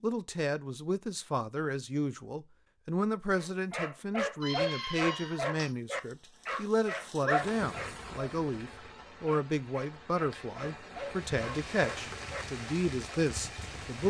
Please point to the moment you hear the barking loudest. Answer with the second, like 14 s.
5 s.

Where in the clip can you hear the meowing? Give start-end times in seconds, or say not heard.
4.4-5.8.